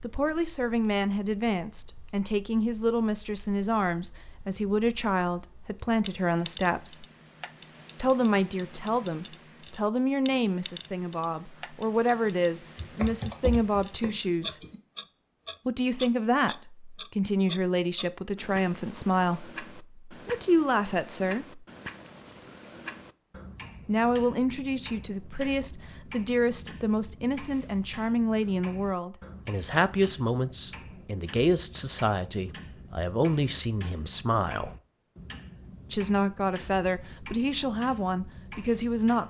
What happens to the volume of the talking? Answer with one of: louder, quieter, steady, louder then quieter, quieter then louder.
steady.